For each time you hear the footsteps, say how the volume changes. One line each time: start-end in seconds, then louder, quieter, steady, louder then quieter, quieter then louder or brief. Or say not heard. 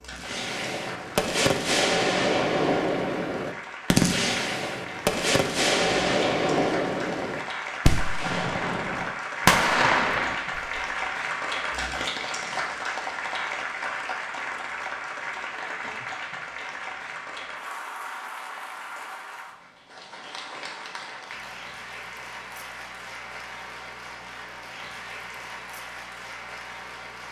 not heard.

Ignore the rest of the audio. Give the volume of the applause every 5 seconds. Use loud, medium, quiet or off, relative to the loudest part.
medium, loud, loud, medium, medium, medium.